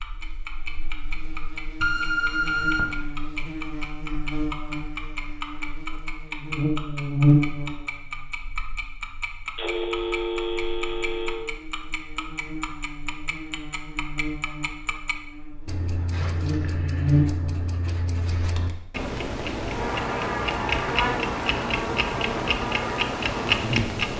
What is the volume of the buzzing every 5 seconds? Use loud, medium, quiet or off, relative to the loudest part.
medium, loud, quiet, loud, loud.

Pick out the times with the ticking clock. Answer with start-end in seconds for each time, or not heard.
0.0-24.1.